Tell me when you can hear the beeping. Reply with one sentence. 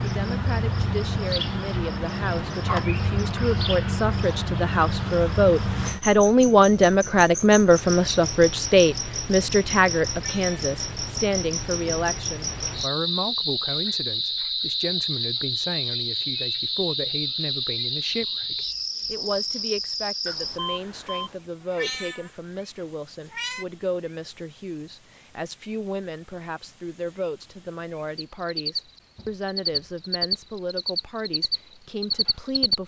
The beeping can be heard from 20.2 to 21.4 s.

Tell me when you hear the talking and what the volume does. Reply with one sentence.
You can hear the talking from 0.0 to 32.8 s, getting quieter.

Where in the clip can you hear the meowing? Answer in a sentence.
You can hear the meowing from 10.1 to 10.7 s and from 21.6 to 23.6 s.